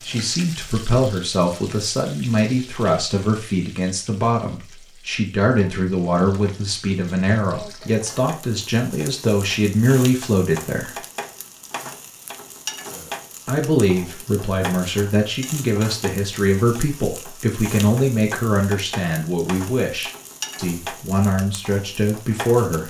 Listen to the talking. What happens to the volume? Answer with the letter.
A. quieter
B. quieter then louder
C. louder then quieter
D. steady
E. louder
D.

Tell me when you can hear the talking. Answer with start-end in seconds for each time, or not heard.
0.0-10.9, 13.4-22.8.